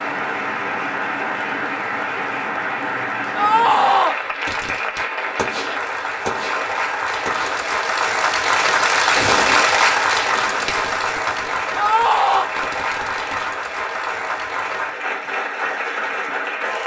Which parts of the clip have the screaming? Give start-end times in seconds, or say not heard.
3.4-4.2, 11.8-12.5.